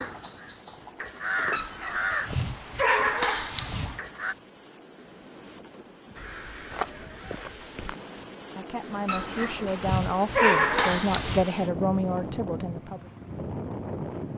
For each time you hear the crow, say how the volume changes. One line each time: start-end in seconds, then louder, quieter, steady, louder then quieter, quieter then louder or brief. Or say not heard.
0.0-4.3 louder then quieter
6.2-8.0 brief.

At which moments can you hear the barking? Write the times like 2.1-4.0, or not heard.
1.5-4.0, 9.1-11.4.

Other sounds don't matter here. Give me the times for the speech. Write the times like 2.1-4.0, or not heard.
8.6-13.1.